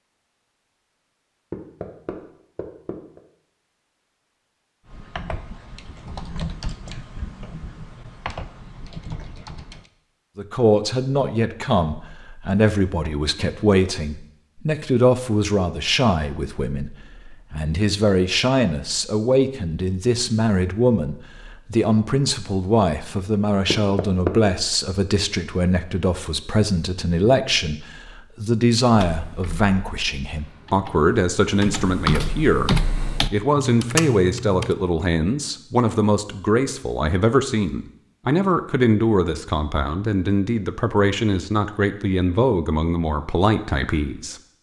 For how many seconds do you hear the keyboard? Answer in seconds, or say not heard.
11 s.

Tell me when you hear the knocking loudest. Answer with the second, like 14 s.
24 s.